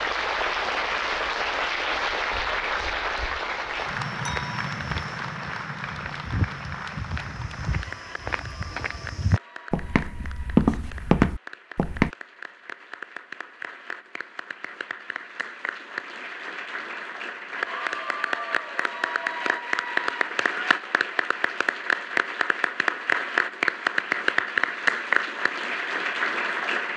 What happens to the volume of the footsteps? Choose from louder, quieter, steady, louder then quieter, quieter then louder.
louder.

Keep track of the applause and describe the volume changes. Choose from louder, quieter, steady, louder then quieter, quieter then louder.
quieter then louder.